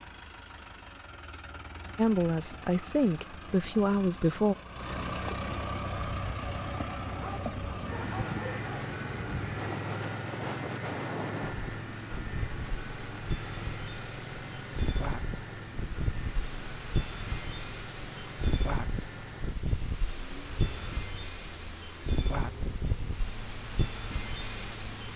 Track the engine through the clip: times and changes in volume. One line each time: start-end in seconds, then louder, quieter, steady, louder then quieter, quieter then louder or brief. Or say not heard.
0.0-25.1 louder then quieter.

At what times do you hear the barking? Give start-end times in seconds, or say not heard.
7.2-8.8.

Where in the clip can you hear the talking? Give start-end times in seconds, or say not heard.
1.9-4.5.